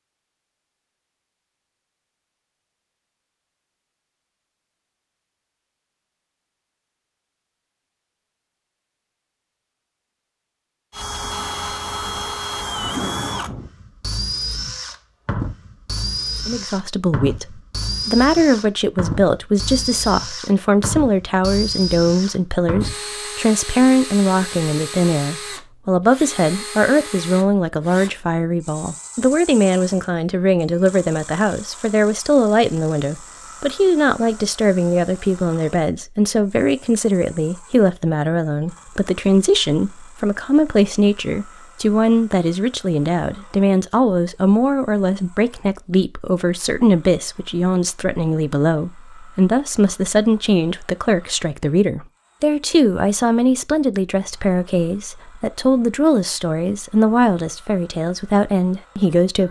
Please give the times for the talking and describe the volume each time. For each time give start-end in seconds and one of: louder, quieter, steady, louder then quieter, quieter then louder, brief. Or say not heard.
16.4-59.4 steady.